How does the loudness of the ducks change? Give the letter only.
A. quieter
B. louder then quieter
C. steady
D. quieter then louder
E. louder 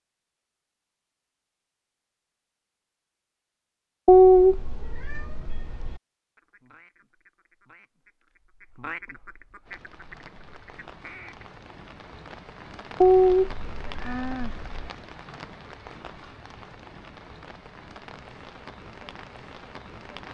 B.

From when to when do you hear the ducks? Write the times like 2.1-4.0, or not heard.
6.3-11.4.